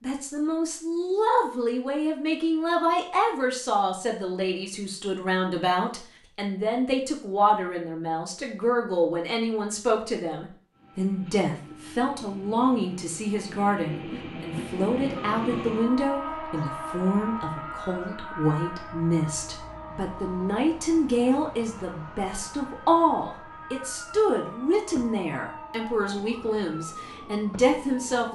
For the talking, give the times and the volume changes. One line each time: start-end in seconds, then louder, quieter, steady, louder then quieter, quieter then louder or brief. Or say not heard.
0.0-28.2 steady.